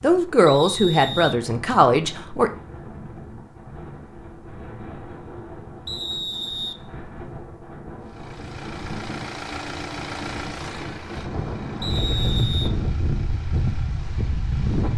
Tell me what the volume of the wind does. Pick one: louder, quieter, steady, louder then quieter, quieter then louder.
louder.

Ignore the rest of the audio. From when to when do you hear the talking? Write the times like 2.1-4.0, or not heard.
0.0-2.5.